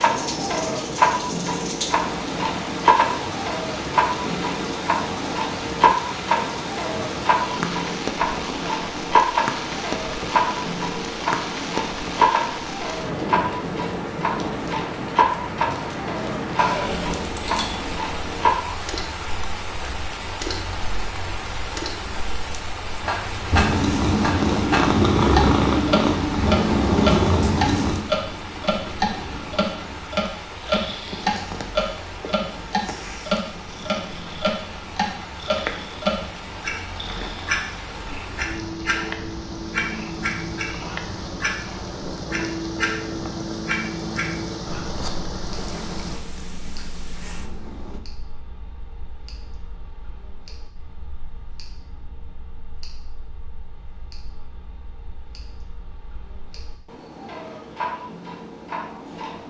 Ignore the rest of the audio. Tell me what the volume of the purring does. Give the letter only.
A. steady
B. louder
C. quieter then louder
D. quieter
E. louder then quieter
D.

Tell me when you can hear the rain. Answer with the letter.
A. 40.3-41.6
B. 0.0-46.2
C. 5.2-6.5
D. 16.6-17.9
B.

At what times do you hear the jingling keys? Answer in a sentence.
You can hear the jingling keys from 16.6 to 17.9 s.